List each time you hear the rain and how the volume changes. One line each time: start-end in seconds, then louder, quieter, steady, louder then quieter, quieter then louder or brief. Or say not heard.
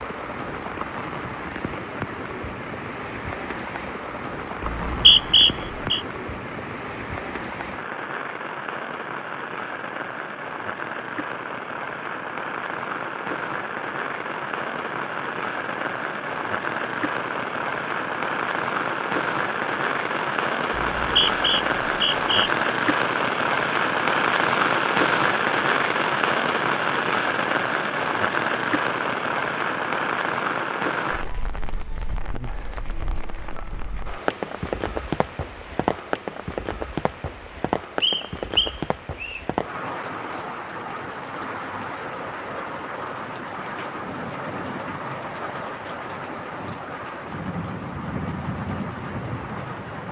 0.0-50.0 louder then quieter.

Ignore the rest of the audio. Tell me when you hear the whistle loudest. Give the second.
5 s.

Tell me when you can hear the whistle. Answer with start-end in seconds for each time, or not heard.
4.7-6.0, 20.8-22.5, 38.0-39.4.